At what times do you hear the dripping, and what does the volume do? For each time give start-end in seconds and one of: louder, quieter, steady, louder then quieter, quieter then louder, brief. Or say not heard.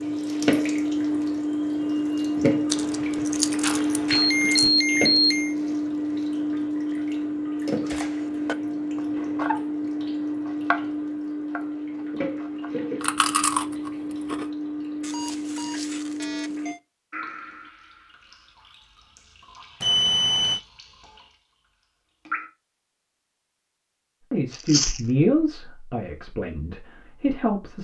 0.0-22.5 quieter.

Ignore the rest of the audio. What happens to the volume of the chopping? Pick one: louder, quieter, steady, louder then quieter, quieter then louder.
louder then quieter.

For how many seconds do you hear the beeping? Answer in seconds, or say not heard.
4 s.